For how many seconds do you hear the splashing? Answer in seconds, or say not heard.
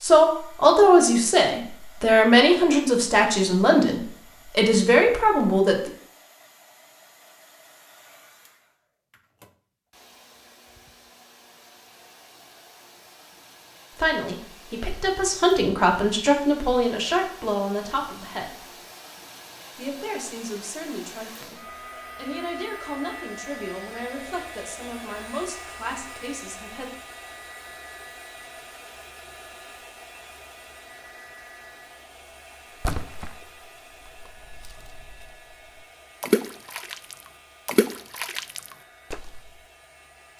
5 s.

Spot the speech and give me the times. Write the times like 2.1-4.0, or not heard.
0.0-5.9, 13.9-18.7, 19.8-26.9.